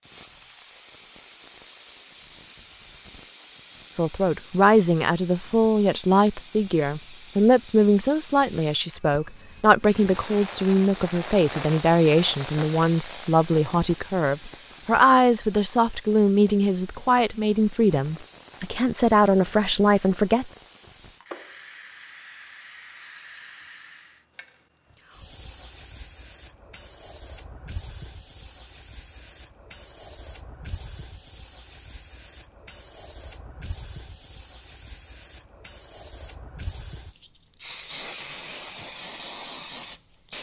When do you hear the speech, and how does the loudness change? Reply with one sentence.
You can hear the speech from 4.0 to 20.5 s, at a steady volume.